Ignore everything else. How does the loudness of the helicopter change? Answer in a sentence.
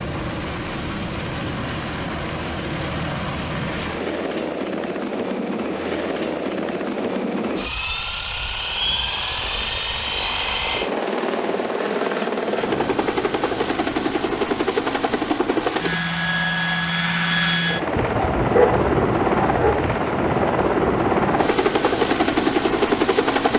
The loudness of the helicopter goes up.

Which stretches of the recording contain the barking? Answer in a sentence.
The barking can be heard from 17.9 to 19.9 s.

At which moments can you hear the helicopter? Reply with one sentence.
The helicopter can be heard from 0.0 to 23.5 s.